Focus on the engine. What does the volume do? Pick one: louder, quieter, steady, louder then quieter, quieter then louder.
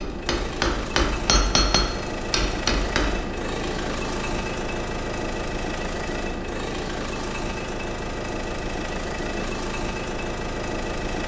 steady.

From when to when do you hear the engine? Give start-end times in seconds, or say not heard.
0.0-11.2.